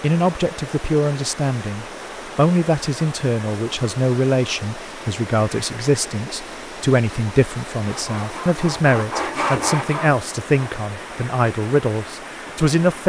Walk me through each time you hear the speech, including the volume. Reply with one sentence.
You can hear the speech from 0.0 to 13.0 s, at a steady volume.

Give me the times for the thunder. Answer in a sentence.
The thunder can't be heard in this clip.